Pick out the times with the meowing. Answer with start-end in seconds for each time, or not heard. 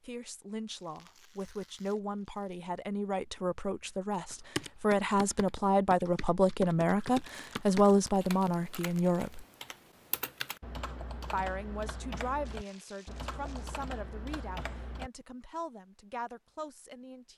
not heard.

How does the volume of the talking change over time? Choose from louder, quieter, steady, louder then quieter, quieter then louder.
louder then quieter.